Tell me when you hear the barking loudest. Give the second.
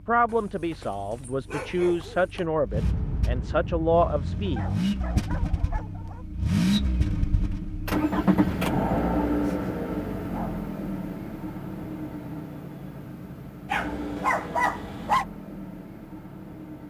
15 s.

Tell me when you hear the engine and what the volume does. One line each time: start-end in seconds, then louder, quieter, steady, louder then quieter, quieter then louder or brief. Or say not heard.
0.0-16.8 louder then quieter.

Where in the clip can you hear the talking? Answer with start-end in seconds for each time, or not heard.
0.1-4.7.